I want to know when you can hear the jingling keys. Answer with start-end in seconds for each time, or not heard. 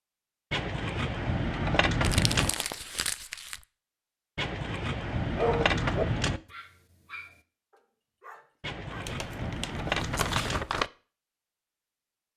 0.5-2.5, 4.3-6.4, 8.6-10.7.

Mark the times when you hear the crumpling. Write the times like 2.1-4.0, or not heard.
2.0-3.6, 9.1-10.9.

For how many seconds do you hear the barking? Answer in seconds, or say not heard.
4 s.